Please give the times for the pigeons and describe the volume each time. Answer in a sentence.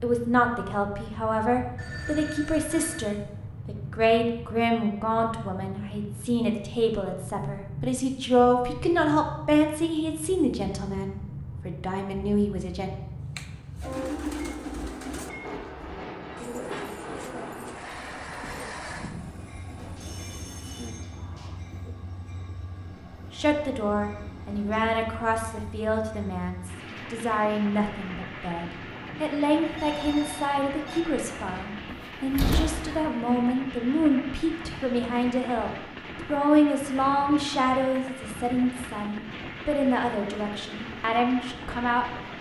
You can hear the pigeons from 13.2 to 21.9 s, getting quieter.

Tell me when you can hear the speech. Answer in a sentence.
You can hear the speech from 0.0 to 12.9 s and from 23.3 to 42.0 s.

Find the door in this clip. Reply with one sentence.
The door can be heard from 31.9 to 33.0 s.